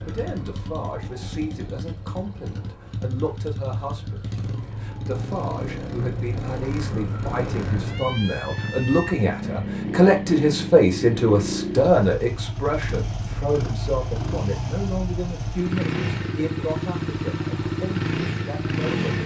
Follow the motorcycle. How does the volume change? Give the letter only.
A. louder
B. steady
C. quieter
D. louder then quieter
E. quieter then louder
A.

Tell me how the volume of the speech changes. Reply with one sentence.
The loudness of the speech goes up, then down.